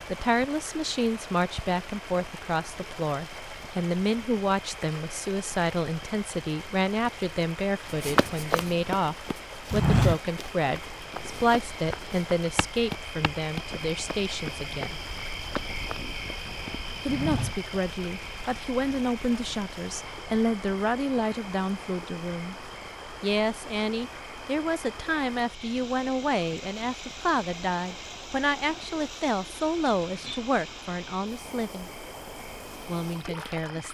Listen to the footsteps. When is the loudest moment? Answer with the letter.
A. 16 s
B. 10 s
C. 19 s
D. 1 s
B.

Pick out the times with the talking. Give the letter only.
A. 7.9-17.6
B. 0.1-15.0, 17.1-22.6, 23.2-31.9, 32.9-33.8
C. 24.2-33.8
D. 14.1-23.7
B.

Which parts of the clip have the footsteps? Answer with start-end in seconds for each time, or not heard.
7.9-17.6.